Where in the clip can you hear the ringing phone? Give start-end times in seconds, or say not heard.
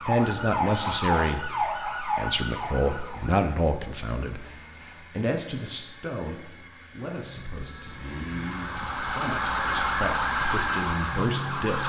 1.2-2.2, 7.5-8.9.